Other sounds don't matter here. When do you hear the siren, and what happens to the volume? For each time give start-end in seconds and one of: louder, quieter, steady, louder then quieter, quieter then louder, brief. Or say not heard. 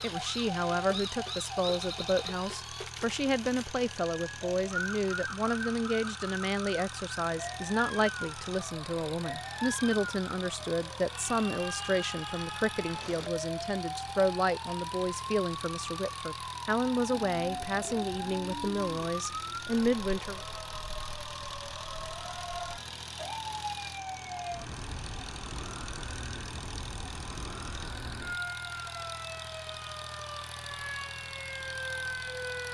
0.0-32.6 steady.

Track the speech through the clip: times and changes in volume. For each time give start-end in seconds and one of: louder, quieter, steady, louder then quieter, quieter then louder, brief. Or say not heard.
0.0-20.4 steady.